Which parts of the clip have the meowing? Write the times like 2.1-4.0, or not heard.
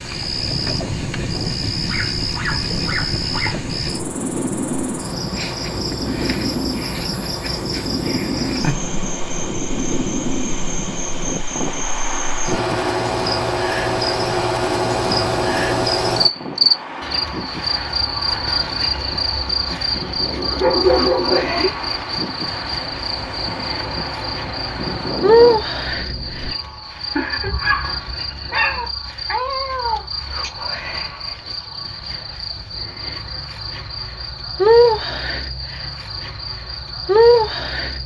28.5-30.5.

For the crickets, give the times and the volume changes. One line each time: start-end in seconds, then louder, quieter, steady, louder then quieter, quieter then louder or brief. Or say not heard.
0.0-38.0 louder.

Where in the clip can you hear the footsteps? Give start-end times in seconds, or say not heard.
not heard.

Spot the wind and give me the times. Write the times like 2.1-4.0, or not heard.
0.0-26.6.